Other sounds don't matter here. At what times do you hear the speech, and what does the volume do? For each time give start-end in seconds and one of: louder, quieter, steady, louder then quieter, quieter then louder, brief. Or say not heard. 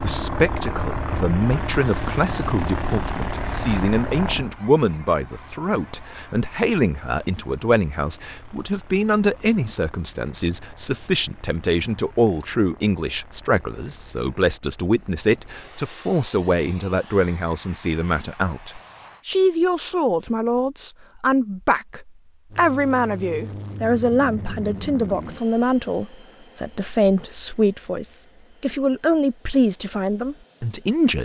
0.0-31.2 steady.